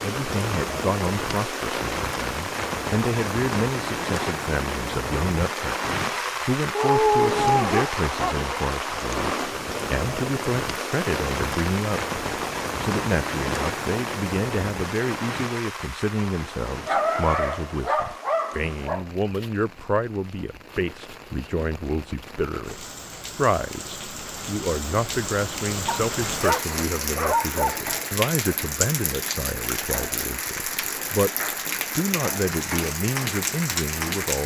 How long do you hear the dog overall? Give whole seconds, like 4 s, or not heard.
6 s.